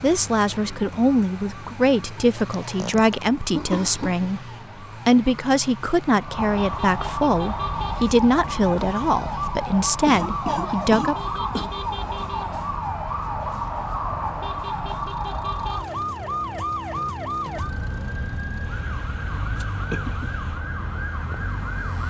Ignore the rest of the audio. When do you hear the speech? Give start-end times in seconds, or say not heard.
0.0-4.5, 5.0-11.4.